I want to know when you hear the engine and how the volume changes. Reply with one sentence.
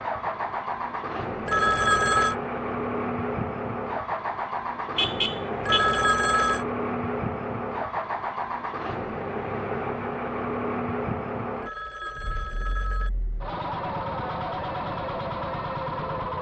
The engine can be heard from 0.0 to 16.3 s, at a steady volume.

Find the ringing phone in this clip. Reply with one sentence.
You can hear the ringing phone from 1.4 to 2.4 s, from 5.7 to 6.7 s and from 11.6 to 13.1 s.